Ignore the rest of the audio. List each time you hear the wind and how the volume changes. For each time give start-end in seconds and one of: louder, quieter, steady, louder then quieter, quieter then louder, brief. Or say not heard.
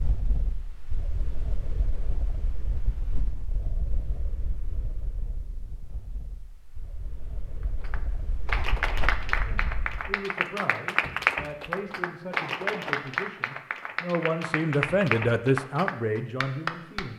0.0-10.2 quieter then louder.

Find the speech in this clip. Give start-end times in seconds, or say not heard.
9.2-17.1.